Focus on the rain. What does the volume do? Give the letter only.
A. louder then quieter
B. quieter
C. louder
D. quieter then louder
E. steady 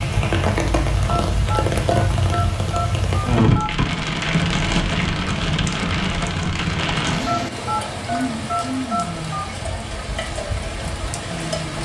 B.